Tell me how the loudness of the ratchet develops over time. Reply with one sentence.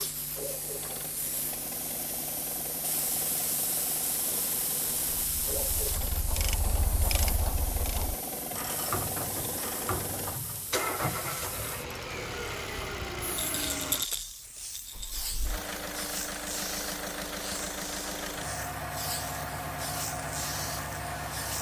The loudness of the ratchet stays about the same.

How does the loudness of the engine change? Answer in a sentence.
The loudness of the engine goes up.